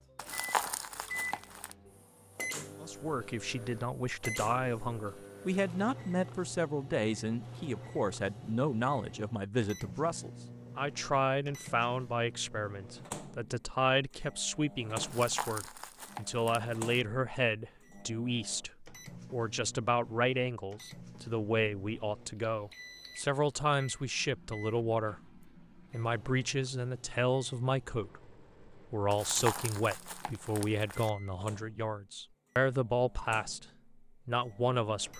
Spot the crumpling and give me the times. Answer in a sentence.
The crumpling can be heard from 0.1 to 1.8 s, from 15.0 to 17.1 s and from 29.1 to 31.1 s.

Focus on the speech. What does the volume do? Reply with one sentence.
The loudness of the speech stays about the same.